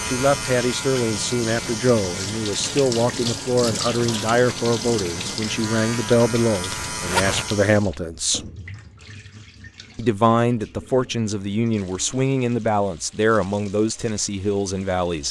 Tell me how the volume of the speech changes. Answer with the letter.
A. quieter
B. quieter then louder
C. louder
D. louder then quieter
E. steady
E.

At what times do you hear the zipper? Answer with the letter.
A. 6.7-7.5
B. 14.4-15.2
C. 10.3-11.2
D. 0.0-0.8
A.